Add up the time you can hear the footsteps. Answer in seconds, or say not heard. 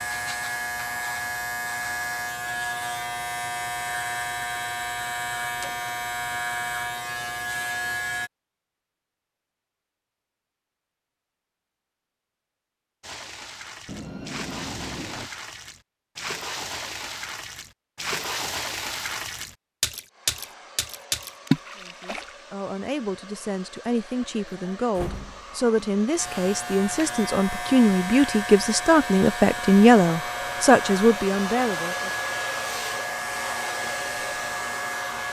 not heard.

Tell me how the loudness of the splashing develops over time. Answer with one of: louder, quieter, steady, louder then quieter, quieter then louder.
louder.